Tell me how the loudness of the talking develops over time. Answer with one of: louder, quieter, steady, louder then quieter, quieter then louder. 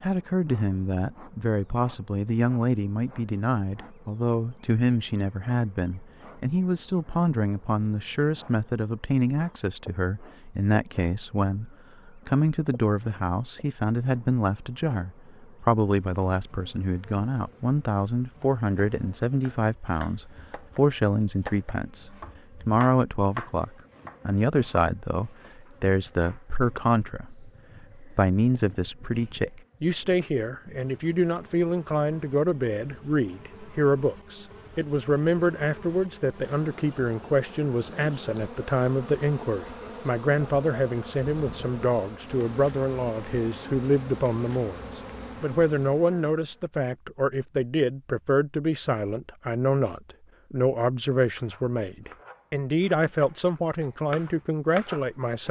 steady.